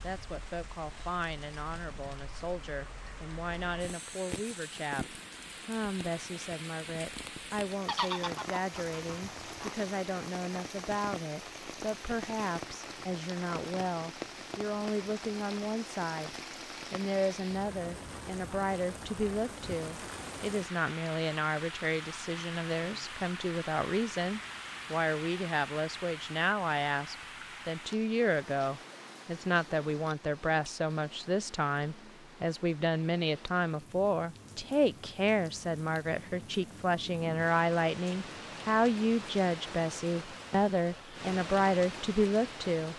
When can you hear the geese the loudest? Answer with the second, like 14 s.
8 s.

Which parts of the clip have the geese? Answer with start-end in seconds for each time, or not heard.
7.8-9.8.